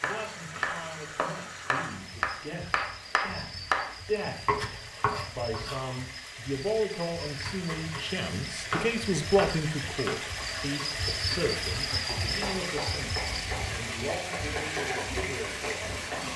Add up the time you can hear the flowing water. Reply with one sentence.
You can hear the flowing water for 16 seconds altogether.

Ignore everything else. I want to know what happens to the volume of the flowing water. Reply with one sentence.
The loudness of the flowing water goes up.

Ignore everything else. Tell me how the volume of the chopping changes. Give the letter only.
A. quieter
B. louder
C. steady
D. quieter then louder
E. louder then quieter
A.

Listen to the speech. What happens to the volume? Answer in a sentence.
The loudness of the speech goes up, then down.